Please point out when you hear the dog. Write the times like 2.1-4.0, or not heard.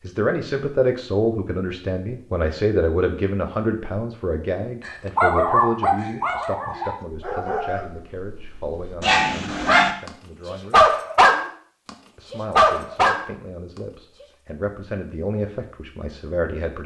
4.8-14.2.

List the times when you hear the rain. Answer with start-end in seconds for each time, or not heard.
not heard.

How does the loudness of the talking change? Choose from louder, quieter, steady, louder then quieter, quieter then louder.
quieter then louder.